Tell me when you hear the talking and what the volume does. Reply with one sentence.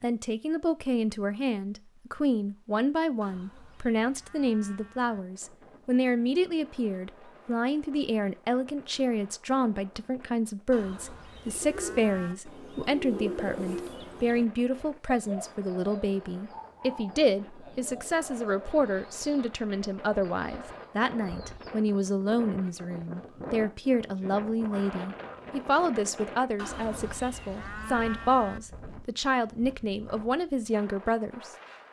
The talking can be heard from 0.0 to 31.5 s, at a steady volume.